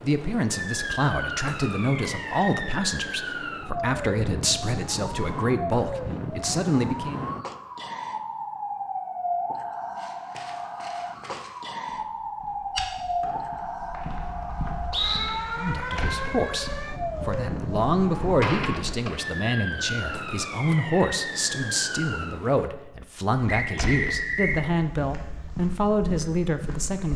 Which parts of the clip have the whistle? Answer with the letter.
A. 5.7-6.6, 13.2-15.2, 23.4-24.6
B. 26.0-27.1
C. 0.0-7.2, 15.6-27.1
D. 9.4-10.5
A.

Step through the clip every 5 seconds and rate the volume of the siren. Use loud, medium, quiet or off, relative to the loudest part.
loud, loud, loud, loud, loud, off.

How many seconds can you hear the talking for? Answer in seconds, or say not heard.
19 s.